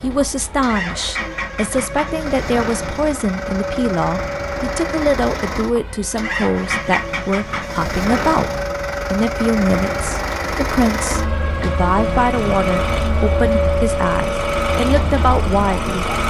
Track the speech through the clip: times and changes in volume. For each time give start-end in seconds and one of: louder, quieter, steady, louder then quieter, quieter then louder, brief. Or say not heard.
0.0-16.1 steady.